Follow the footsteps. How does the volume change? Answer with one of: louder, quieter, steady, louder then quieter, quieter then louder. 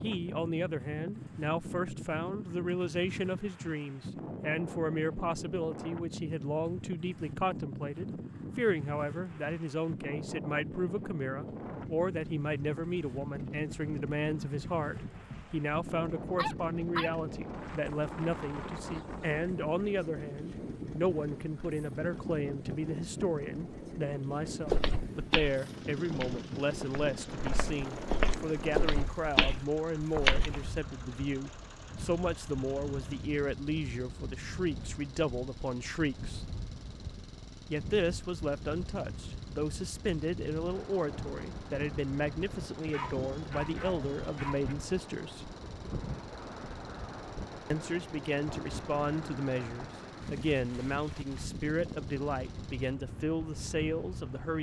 quieter then louder.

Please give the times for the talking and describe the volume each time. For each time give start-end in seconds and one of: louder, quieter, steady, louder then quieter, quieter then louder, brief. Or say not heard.
0.0-36.5 steady
37.7-45.5 steady
47.7-54.5 steady.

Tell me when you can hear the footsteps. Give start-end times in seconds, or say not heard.
24.6-30.7.